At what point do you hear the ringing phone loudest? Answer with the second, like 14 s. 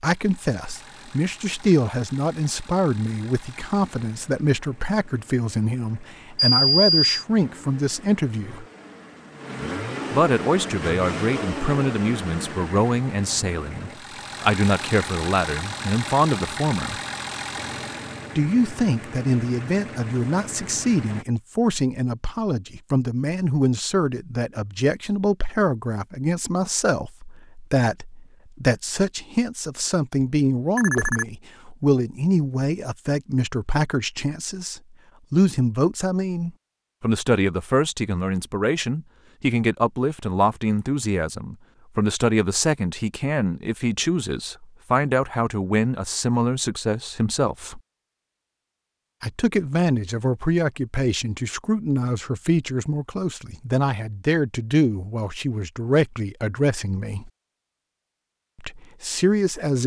7 s.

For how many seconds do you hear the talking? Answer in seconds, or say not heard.
54 s.